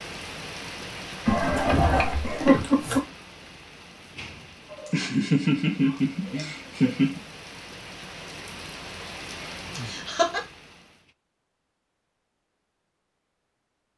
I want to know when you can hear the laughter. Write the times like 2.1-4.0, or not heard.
1.2-3.0, 4.7-7.2, 9.8-10.4.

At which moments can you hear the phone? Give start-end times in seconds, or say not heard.
not heard.